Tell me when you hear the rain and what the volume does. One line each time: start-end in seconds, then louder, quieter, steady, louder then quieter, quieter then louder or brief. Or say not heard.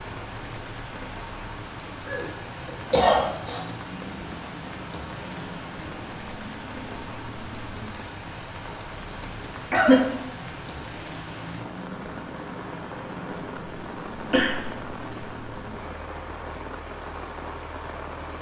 0.0-18.3 steady.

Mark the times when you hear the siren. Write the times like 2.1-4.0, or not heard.
not heard.